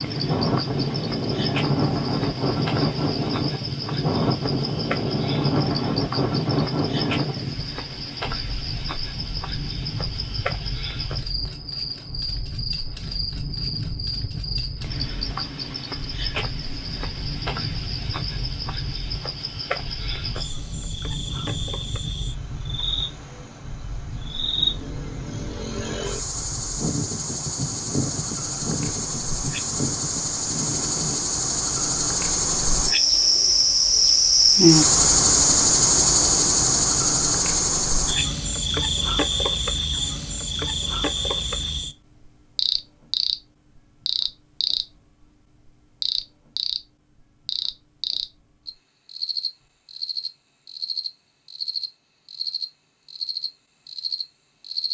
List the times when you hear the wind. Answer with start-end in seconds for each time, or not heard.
0.0-31.2.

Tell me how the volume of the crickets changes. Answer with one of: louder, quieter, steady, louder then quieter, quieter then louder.
louder then quieter.